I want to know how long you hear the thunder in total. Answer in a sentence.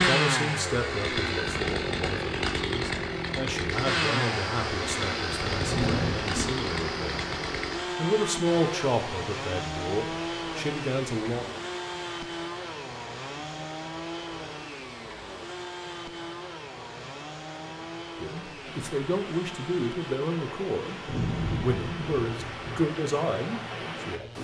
You can hear the thunder for 3 seconds altogether.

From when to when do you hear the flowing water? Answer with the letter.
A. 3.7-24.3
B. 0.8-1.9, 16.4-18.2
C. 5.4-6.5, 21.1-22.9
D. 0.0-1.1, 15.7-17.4
A.